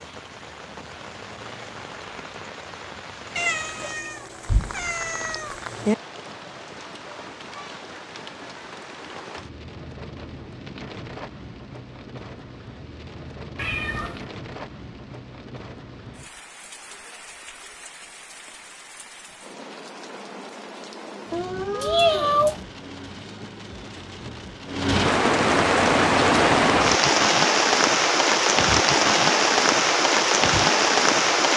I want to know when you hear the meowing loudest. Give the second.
22 s.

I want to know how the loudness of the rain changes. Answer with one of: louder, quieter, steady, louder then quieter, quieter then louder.
louder.